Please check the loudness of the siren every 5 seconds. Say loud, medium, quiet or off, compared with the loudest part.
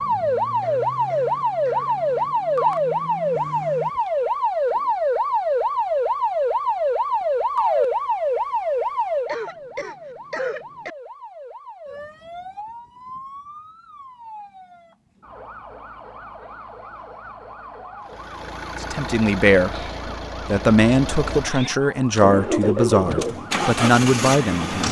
loud, loud, quiet, quiet, quiet.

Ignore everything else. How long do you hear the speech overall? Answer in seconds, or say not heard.
6 s.